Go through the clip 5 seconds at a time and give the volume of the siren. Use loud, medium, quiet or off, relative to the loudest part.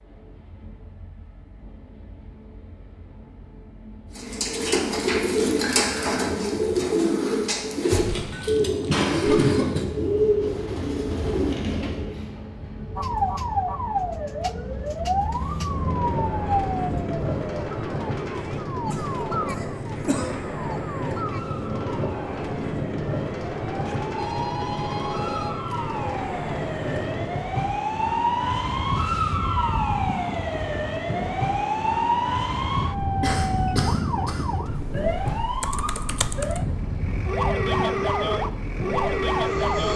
off, off, loud, loud, medium, loud, loud, loud.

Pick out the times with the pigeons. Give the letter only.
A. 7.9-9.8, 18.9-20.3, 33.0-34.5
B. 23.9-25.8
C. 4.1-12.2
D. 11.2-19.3
C.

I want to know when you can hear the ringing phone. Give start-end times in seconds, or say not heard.
23.9-25.8.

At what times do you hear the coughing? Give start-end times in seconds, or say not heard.
7.9-9.8, 18.9-20.3, 33.0-34.5.